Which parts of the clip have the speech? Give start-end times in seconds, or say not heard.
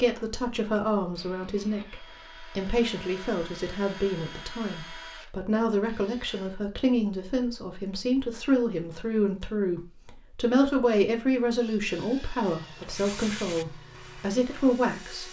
0.0-15.2.